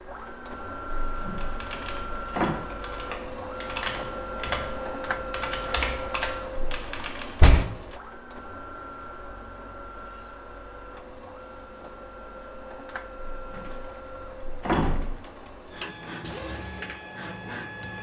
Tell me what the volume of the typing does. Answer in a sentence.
The loudness of the typing goes up.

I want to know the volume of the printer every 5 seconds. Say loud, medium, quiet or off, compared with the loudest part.
loud, loud, medium, loud.